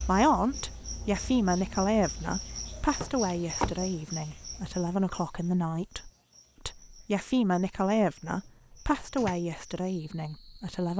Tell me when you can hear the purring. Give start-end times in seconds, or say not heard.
not heard.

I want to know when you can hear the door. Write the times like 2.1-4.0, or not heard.
3.0-3.9, 7.9-9.3.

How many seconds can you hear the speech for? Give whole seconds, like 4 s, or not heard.
11 s.